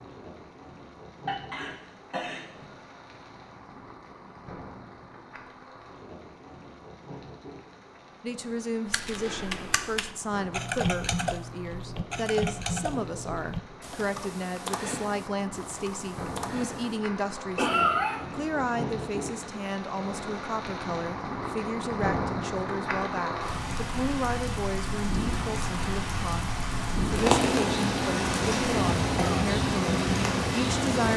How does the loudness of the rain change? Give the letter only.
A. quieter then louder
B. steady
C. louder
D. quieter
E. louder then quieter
C.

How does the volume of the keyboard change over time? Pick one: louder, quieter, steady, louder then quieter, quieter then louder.
quieter.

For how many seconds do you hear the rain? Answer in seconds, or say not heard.
31 s.